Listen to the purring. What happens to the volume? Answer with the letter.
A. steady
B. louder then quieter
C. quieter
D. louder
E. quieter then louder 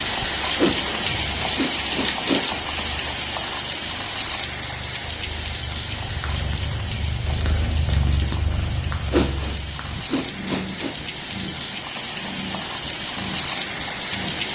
B.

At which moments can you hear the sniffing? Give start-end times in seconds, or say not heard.
0.6-2.5, 9.1-10.9.